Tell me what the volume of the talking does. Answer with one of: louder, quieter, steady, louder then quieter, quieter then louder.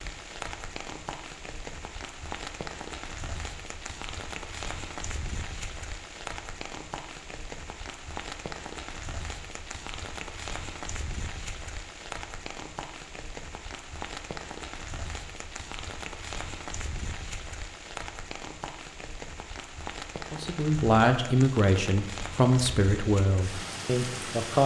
quieter.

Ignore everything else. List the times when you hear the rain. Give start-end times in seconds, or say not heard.
0.0-24.6.